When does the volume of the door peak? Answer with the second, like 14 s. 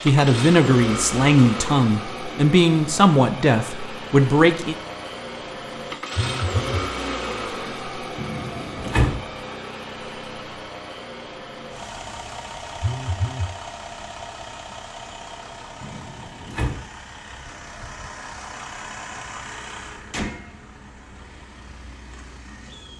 9 s.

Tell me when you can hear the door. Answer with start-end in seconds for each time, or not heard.
8.2-9.2, 15.8-16.9.